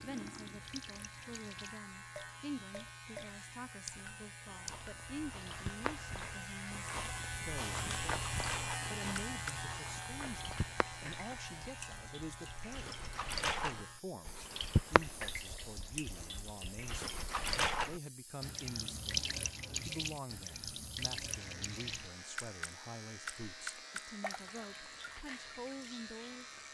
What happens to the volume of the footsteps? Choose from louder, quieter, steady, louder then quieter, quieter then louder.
louder then quieter.